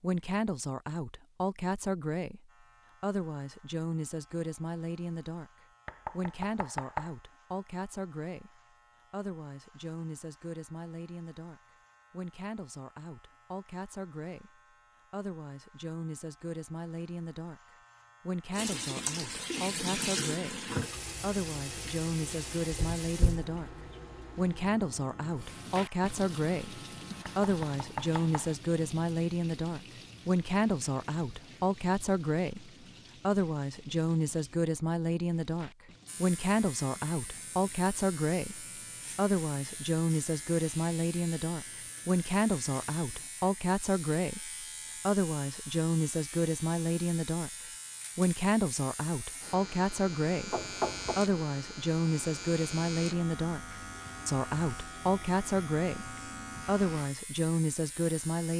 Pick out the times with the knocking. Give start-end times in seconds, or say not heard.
5.8-7.1, 27.2-28.6, 50.5-51.2.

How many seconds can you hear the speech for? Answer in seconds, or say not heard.
56 s.